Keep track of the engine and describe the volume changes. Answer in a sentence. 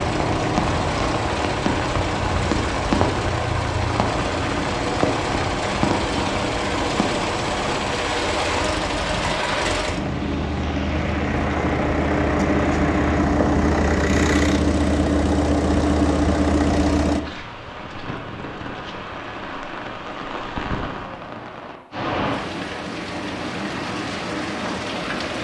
The loudness of the engine goes up.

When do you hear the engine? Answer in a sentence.
The engine can be heard from 0.0 to 17.2 s.